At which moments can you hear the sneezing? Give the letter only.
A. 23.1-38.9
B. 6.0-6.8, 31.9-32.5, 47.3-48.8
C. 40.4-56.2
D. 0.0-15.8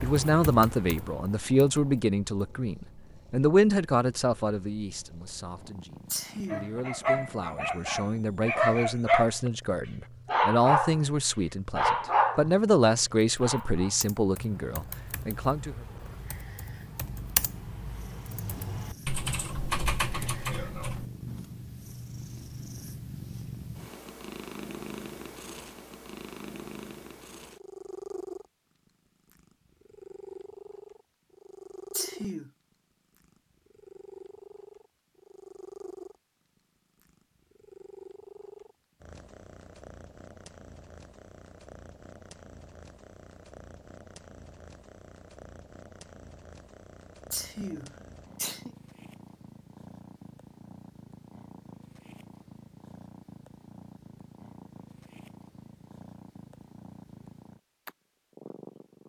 B.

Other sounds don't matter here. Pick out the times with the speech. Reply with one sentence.
You can hear the speech from 0.0 to 15.8 s.